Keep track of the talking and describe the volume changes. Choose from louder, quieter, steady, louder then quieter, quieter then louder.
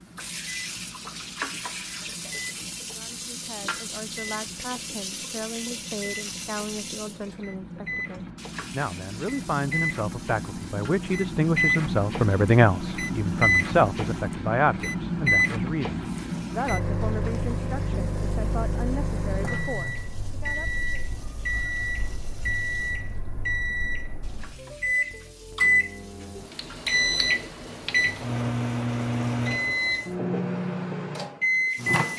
louder then quieter.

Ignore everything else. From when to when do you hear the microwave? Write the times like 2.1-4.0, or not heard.
0.0-32.1.